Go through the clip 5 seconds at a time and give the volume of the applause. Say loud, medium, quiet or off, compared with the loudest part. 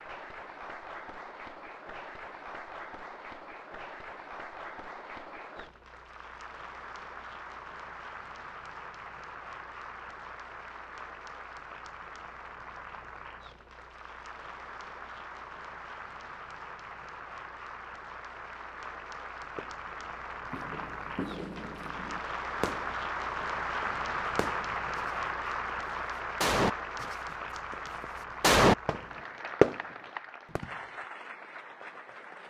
medium, medium, medium, medium, loud, loud, medium.